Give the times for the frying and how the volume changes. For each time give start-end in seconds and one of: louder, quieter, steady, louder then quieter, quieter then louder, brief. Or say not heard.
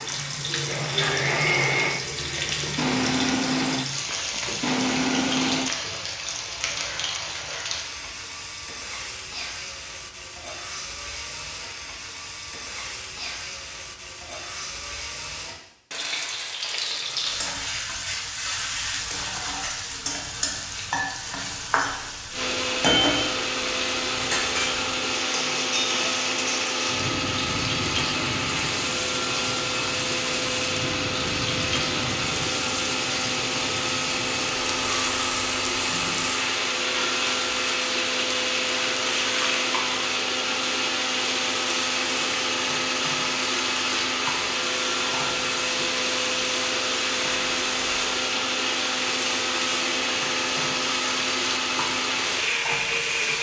0.0-53.3 steady.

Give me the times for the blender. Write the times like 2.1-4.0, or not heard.
0.0-5.8, 22.3-53.3.